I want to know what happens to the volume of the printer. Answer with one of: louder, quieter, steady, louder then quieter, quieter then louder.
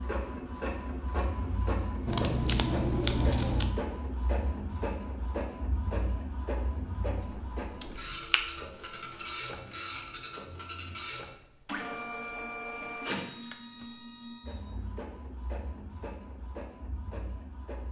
quieter.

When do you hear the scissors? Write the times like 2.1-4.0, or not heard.
2.0-3.8, 7.2-8.4, 13.3-14.3.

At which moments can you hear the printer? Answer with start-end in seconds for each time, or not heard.
0.0-17.8.